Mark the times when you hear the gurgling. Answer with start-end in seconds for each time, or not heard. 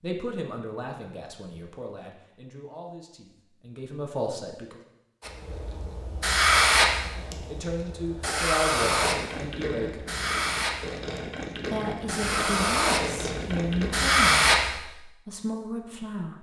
8.8-14.2.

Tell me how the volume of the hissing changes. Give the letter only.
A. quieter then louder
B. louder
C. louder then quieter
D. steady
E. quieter
A.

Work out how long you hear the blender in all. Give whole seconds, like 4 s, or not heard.
not heard.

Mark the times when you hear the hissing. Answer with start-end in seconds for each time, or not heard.
5.2-14.8.